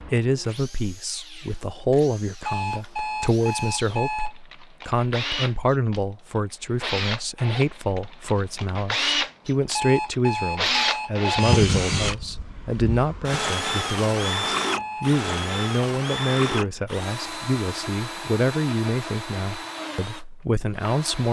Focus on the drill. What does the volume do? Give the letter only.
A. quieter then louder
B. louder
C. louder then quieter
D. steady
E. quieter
C.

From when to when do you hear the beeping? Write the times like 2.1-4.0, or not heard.
2.5-4.3, 9.7-11.6, 14.8-15.2.